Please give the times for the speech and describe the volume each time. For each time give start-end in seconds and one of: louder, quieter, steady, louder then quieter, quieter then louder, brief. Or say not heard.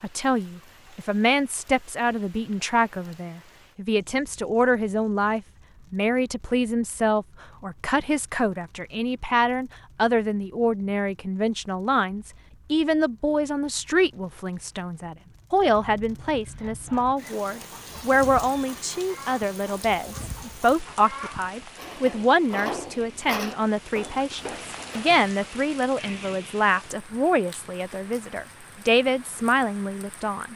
0.0-30.5 steady.